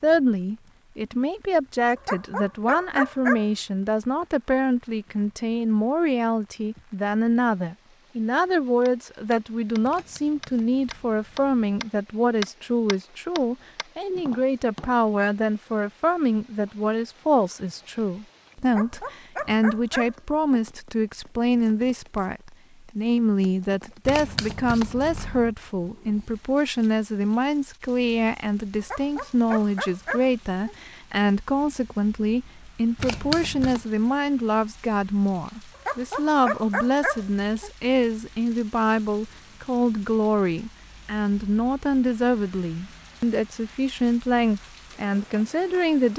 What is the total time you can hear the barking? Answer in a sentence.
You can hear the barking for 7 seconds altogether.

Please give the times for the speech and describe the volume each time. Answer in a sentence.
You can hear the speech from 0.0 to 46.1 s, at a steady volume.